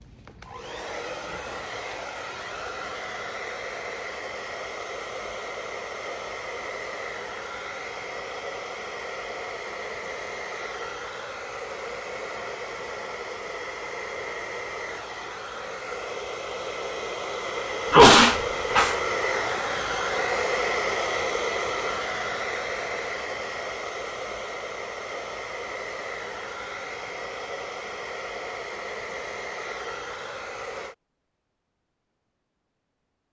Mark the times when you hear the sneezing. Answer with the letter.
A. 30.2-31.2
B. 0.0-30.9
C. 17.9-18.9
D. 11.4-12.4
C.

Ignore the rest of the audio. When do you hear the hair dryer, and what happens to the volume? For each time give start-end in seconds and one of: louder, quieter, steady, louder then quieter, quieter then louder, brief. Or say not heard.
0.0-30.9 louder then quieter.